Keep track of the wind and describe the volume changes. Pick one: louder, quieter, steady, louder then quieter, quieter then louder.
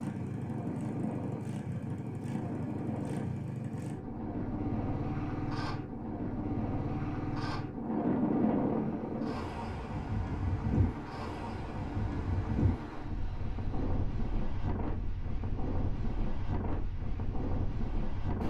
louder then quieter.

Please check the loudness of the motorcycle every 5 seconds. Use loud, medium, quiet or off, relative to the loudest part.
loud, loud, medium, off.